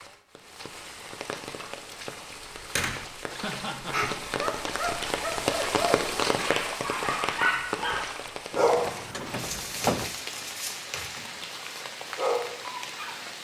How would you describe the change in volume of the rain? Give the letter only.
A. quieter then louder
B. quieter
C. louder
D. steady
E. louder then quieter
E.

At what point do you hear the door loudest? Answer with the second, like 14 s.
10 s.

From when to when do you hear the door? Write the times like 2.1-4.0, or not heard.
2.2-3.0, 8.9-10.2.